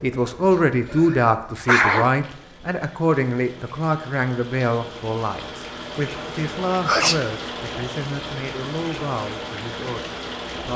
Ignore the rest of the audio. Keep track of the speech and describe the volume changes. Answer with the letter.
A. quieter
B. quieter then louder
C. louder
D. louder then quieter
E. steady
A.